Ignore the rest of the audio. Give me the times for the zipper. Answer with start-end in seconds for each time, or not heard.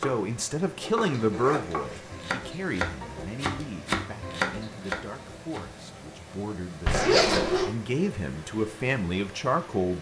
0.8-2.2, 6.8-7.7.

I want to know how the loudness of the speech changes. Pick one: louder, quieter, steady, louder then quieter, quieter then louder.
quieter then louder.